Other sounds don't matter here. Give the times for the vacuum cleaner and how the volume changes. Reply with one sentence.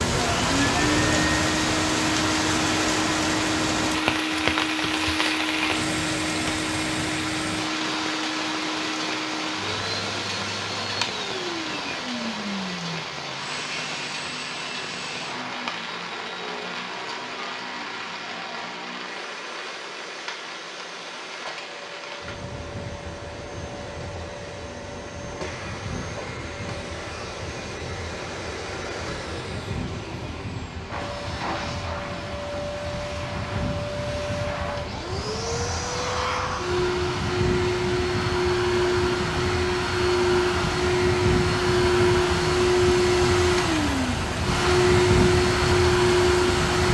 You can hear the vacuum cleaner from 0.1 to 46.8 s, getting quieter then louder.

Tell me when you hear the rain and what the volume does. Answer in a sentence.
The rain can be heard from 0.0 to 46.8 s, getting quieter then louder.